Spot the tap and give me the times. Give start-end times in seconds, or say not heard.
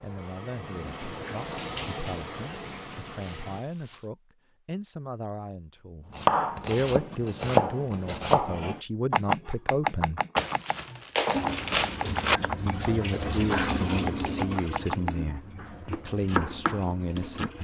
0.0-3.6, 11.3-17.5.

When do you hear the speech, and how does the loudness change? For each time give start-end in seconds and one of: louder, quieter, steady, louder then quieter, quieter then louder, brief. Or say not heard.
0.0-10.2 louder
12.7-17.5 steady.